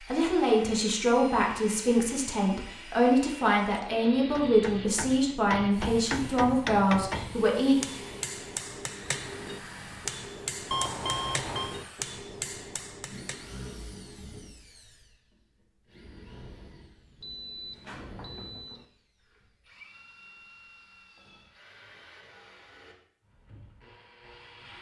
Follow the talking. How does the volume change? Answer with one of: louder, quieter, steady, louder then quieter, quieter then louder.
steady.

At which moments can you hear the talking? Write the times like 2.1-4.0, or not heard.
0.0-7.8.